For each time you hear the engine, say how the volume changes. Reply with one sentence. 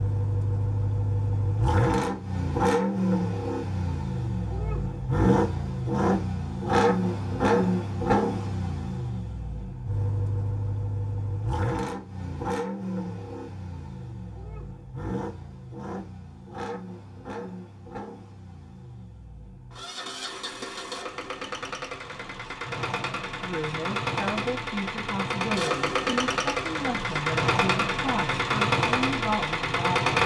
You can hear the engine from 0.0 to 30.2 s, getting quieter then louder.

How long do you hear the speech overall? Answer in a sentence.
You can hear the speech for 7 seconds altogether.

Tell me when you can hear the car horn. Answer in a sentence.
The car horn can't be heard in this clip.